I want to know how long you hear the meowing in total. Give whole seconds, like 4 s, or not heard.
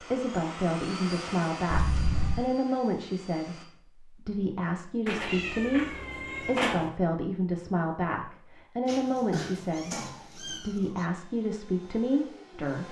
5 s.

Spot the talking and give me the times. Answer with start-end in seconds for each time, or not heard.
0.0-12.8.